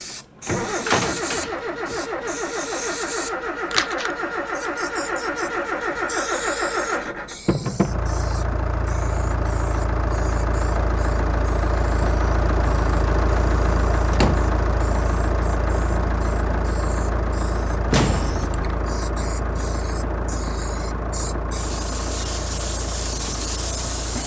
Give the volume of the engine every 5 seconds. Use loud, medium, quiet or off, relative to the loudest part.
loud, loud, loud, loud, medium.